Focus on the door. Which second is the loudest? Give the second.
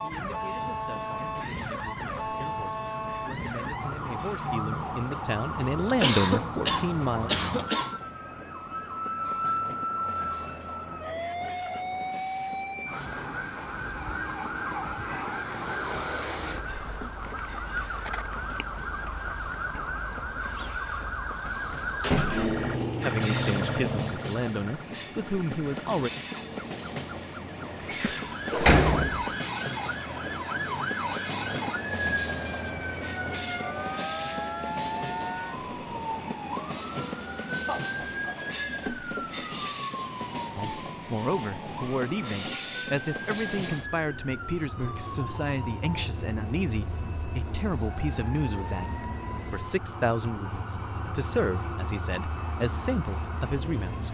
29 s.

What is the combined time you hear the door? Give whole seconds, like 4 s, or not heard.
2 s.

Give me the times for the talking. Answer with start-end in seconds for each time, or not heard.
0.0-7.3, 23.0-26.1, 40.5-54.0.